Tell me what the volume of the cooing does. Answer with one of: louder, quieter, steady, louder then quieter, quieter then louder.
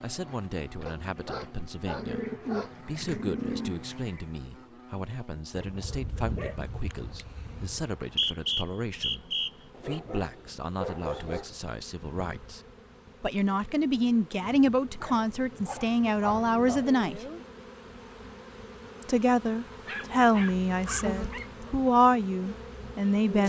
louder then quieter.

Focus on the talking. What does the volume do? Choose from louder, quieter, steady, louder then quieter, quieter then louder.
louder.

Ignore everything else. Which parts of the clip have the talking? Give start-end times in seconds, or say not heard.
0.0-12.6, 13.2-17.2, 19.1-23.4.